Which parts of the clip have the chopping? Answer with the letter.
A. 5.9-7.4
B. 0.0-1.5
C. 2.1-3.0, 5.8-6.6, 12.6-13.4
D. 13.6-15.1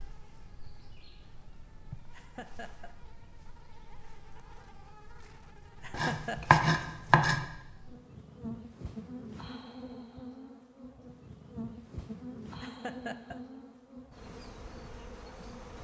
A.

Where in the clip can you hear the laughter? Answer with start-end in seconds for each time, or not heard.
2.1-3.0, 5.8-6.6, 12.6-13.4.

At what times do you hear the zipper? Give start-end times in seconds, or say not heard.
not heard.